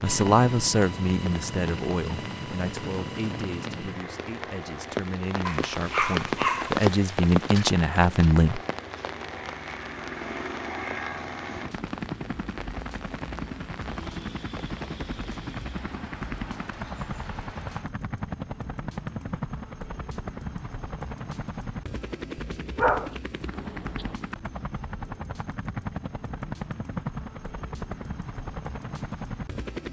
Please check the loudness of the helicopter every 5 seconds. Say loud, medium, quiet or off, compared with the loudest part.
loud, medium, loud, loud, loud, loud.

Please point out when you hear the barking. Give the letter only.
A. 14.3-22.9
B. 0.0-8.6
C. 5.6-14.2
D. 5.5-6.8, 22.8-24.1
D.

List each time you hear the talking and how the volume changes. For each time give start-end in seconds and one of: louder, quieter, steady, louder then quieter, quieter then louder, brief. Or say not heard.
0.0-8.6 quieter then louder.